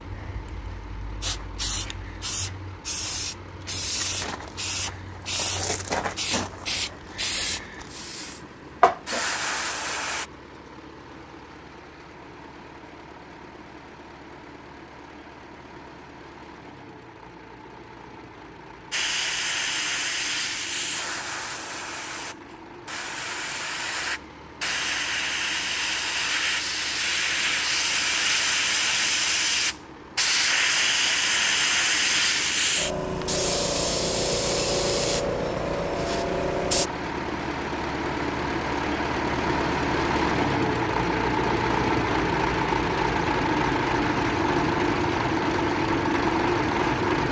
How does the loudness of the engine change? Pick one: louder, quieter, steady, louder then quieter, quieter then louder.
louder.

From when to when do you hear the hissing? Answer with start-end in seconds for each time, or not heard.
0.0-10.2, 18.9-36.9.